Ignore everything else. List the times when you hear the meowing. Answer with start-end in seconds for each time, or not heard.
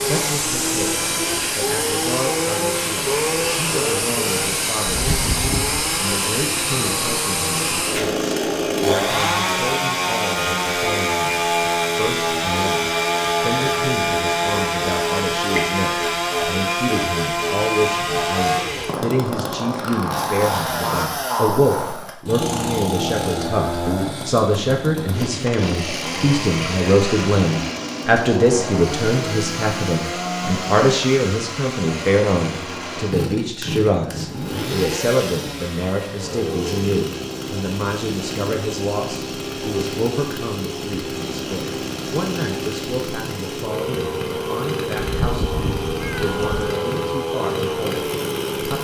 4.9-5.8, 45.1-46.7.